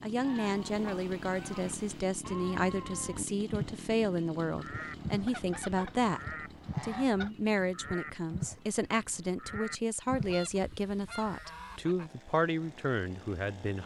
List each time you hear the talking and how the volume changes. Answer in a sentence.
You can hear the talking from 0.0 to 13.8 s, at a steady volume.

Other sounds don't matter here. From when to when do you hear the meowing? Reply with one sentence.
You can't hear the meowing here.